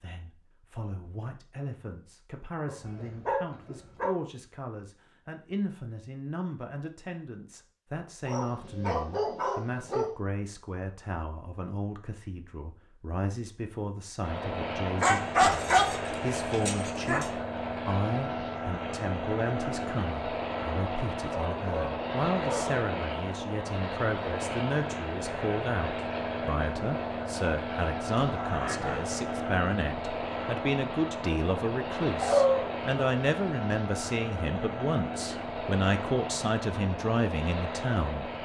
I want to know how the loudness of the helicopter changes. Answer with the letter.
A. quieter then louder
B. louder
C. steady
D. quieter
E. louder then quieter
C.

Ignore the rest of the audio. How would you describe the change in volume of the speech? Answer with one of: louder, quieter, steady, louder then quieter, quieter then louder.
louder.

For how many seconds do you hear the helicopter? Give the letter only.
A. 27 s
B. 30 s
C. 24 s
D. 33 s
C.